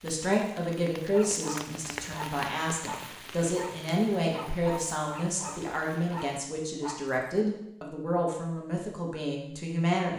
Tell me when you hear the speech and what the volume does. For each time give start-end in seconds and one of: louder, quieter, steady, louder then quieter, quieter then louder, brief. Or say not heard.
0.0-10.1 steady.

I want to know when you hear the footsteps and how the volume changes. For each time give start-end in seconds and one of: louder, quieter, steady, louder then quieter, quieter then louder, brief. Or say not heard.
not heard.